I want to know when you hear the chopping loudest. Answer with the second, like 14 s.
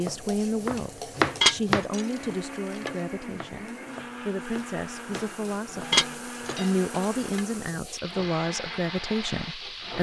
1 s.